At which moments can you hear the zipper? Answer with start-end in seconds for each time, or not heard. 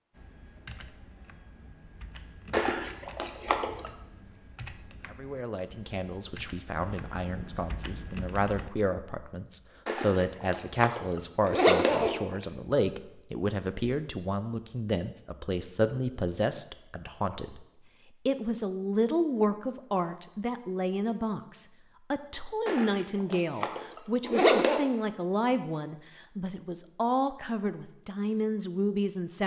2.5-3.9, 9.8-12.4, 22.6-24.8.